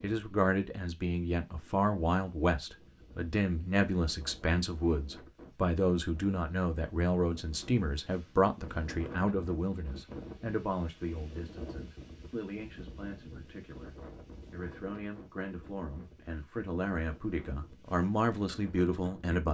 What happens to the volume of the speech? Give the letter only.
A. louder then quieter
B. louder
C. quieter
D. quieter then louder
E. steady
D.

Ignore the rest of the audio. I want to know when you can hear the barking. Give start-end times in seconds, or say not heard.
not heard.